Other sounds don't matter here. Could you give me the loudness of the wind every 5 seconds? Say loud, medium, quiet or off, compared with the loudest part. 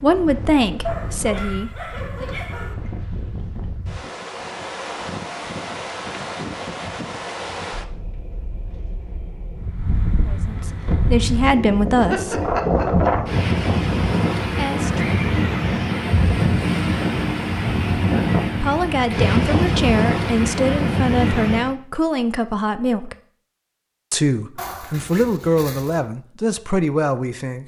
quiet, medium, loud, loud, loud, off.